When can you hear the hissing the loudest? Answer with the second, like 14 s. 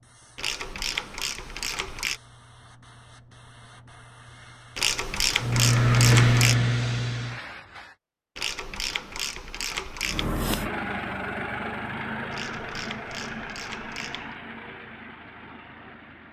6 s.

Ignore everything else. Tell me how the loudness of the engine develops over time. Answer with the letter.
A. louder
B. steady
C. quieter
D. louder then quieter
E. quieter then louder
C.